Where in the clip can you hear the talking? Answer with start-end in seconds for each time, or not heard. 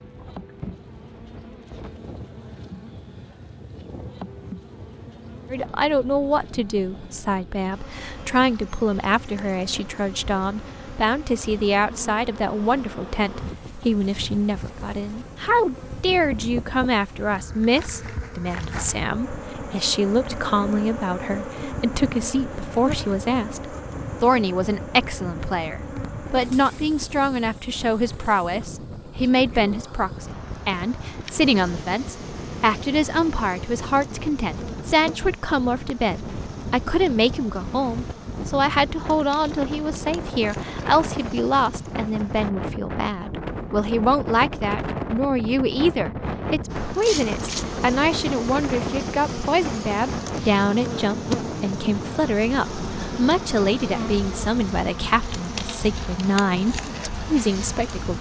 5.5-58.1.